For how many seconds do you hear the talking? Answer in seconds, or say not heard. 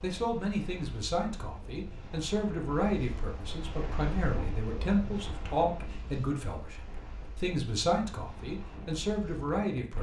10 s.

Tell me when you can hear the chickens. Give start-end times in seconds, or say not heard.
not heard.